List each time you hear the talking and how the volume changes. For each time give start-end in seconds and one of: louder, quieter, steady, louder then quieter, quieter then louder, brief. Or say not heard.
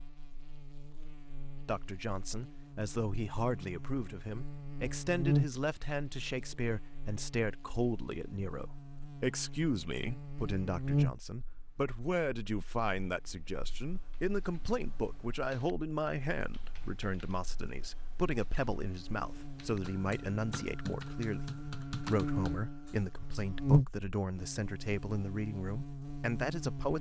1.6-26.9 steady.